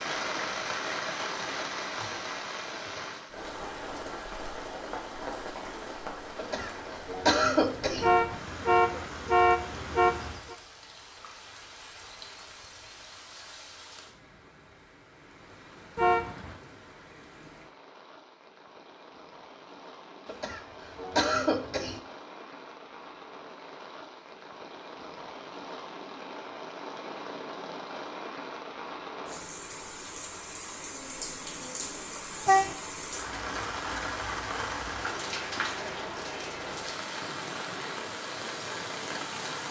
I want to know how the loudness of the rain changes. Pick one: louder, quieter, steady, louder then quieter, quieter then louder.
quieter then louder.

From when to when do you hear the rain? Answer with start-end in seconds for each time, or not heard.
0.0-39.6.